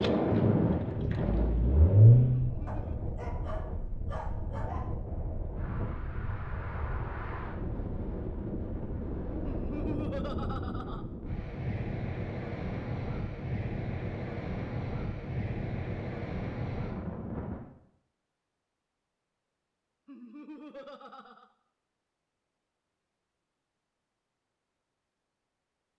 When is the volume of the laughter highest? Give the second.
10 s.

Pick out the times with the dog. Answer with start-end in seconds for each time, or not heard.
2.6-5.0.